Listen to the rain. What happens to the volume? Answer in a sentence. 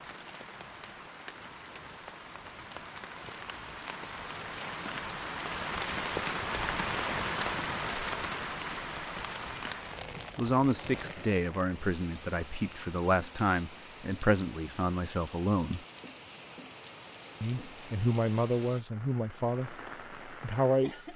The volume of the rain goes up, then down.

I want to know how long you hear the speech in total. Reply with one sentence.
You can hear the speech for 9 seconds altogether.